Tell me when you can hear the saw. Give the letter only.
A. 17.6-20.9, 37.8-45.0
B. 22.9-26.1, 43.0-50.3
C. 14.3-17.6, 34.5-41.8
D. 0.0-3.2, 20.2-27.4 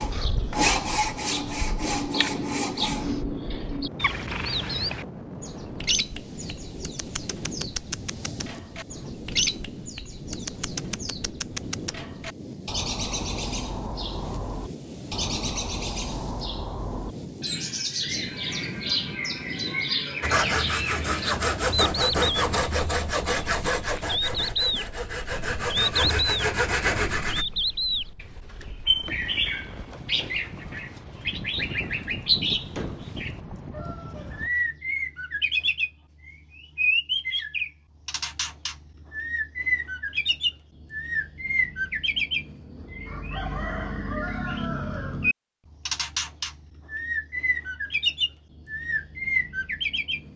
D.